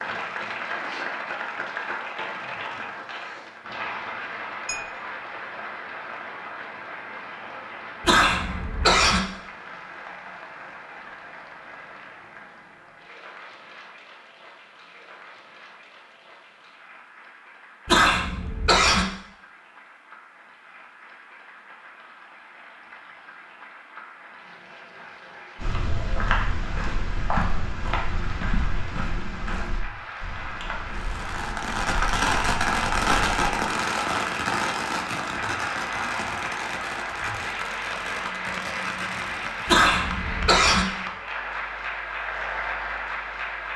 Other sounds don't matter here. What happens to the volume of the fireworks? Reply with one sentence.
The volume of the fireworks goes down.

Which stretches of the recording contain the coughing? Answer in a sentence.
The coughing can be heard from 8.0 to 9.2 s, from 17.9 to 19.1 s and from 39.6 to 40.9 s.